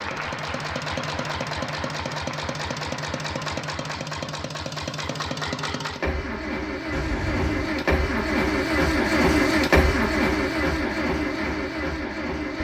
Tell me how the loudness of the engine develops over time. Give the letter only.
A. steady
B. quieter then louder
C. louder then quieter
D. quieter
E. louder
E.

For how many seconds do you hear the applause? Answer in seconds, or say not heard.
4 s.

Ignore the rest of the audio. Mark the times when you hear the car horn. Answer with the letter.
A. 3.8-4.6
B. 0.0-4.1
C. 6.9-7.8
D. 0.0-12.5
C.